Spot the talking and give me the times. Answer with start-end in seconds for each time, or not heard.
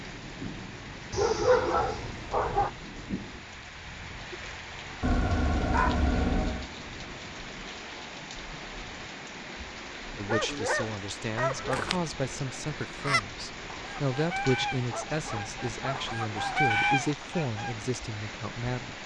10.2-19.0.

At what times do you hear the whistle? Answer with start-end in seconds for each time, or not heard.
not heard.